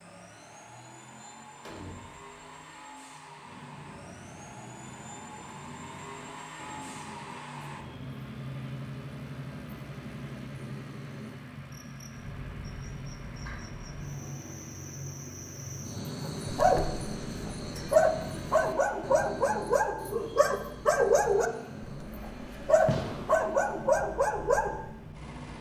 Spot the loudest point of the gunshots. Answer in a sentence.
The loudest moment of the gunshots is at 23 seconds.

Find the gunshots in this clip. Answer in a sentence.
The gunshots can be heard from 1.6 to 2.8 s and from 22.9 to 23.4 s.